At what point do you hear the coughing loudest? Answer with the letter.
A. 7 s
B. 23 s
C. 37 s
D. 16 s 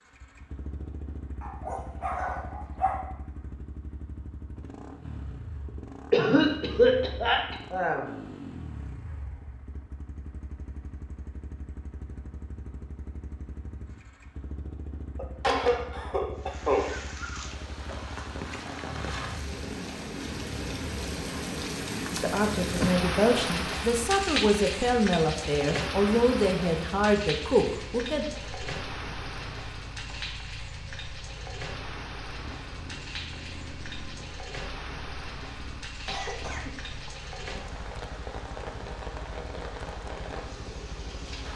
A.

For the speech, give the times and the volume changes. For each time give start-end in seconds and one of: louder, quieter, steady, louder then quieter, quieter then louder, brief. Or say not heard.
22.1-28.2 steady.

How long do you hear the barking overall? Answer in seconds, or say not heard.
2 s.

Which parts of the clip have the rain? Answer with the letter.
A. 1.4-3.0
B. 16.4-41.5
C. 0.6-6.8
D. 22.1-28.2
B.